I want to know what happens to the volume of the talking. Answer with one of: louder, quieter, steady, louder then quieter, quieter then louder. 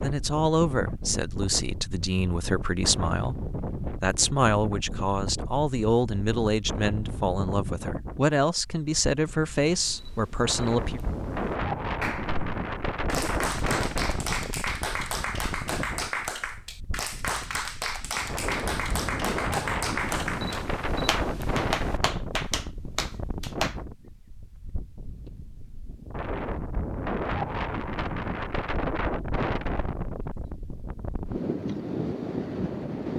steady.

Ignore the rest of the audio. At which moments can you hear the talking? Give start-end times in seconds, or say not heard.
0.0-11.0.